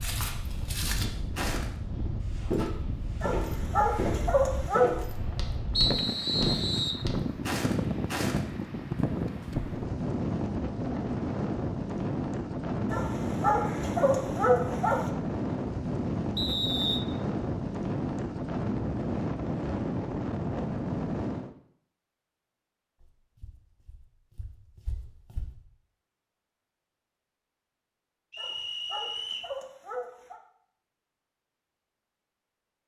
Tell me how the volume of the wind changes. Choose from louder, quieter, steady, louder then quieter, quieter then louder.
louder.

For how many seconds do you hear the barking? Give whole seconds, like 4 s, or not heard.
6 s.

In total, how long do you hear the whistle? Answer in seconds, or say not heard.
3 s.